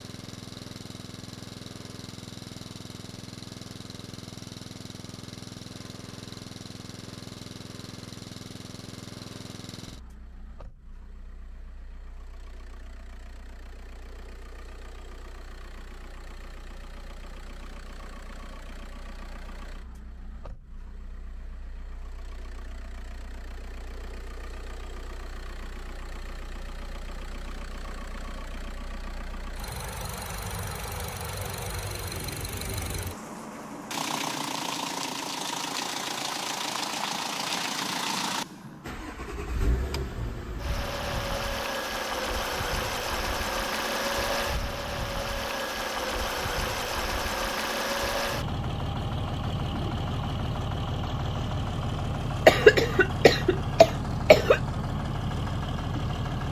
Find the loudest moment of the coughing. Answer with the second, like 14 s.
53 s.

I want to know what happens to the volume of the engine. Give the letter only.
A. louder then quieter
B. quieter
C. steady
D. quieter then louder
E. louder
D.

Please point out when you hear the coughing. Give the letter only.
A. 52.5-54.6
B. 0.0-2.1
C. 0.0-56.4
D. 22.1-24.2
A.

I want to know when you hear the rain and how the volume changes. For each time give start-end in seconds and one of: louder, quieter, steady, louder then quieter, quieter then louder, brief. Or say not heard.
not heard.